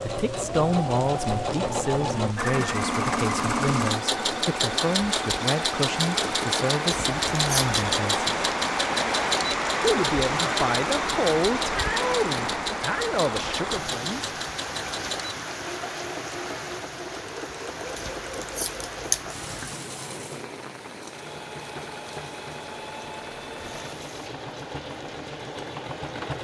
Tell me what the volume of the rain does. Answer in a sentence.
The loudness of the rain goes up, then down.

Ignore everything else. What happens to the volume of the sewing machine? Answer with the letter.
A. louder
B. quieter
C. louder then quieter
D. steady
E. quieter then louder
B.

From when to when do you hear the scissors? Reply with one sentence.
You can hear the scissors from 6.9 to 7.8 s and from 17.9 to 19.6 s.